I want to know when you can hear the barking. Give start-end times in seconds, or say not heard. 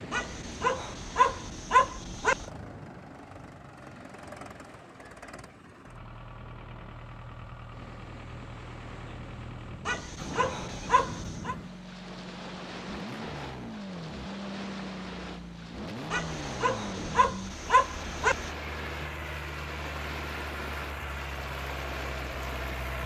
0.1-2.5, 9.8-11.6, 16.1-18.5.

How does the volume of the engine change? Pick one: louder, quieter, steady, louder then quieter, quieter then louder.
louder.